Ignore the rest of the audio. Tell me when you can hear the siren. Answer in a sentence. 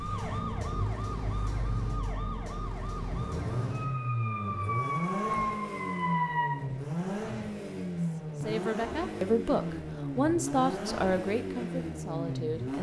The siren can be heard from 0.0 to 6.6 s.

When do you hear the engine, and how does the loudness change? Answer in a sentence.
You can hear the engine from 0.0 to 12.7 s, getting louder.